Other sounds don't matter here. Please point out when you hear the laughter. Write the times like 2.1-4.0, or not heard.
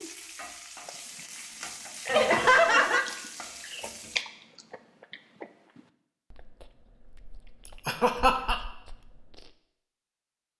2.0-3.0, 7.8-8.6.